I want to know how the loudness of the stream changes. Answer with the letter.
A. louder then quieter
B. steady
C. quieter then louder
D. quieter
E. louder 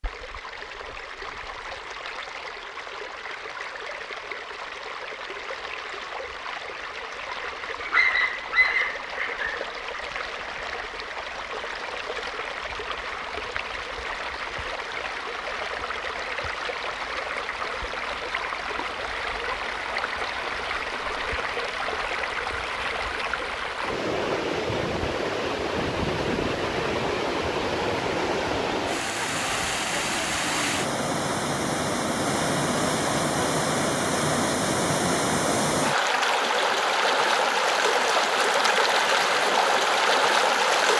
E.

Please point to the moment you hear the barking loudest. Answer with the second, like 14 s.
8 s.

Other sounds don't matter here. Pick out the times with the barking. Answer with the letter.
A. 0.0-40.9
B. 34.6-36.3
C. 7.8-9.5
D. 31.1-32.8
C.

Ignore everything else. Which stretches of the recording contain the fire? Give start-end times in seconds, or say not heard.
not heard.